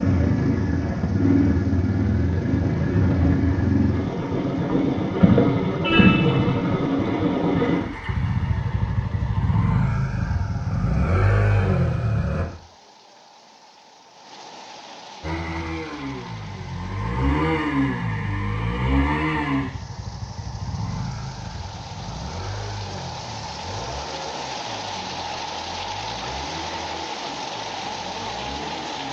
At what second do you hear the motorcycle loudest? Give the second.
6 s.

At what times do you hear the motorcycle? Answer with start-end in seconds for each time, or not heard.
0.0-12.4, 15.2-29.0.